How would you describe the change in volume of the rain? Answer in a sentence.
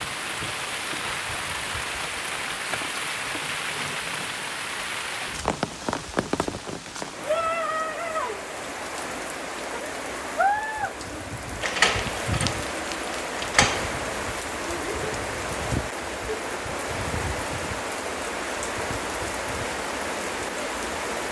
The loudness of the rain stays about the same.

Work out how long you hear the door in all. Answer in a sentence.
The door can be heard for 2 seconds in total.